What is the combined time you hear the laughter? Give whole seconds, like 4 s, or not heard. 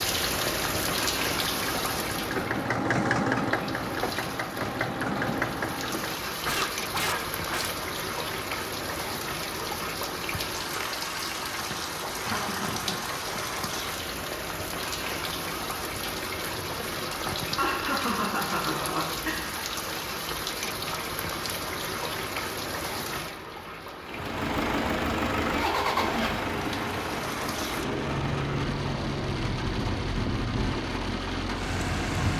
3 s.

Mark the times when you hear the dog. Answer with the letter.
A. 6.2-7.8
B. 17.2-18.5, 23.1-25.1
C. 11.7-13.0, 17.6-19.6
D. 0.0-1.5
A.